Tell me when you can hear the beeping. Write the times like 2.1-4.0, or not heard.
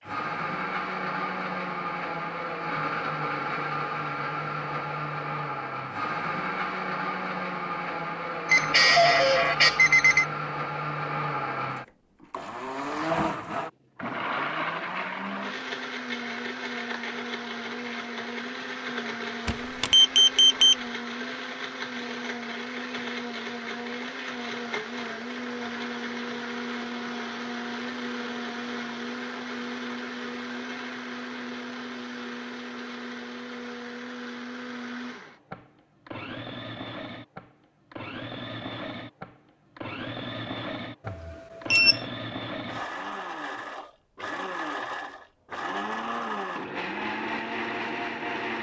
8.4-10.2, 19.4-20.8, 41.0-42.0.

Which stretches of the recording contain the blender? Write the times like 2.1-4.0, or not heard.
0.0-48.5.